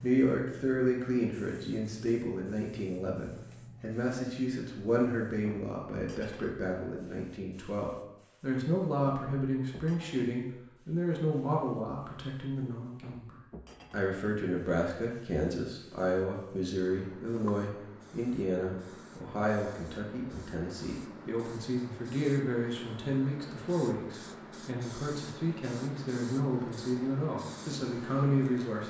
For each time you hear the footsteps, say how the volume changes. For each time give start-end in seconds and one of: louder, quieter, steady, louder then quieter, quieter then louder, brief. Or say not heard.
not heard.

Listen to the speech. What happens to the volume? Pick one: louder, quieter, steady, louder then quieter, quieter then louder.
steady.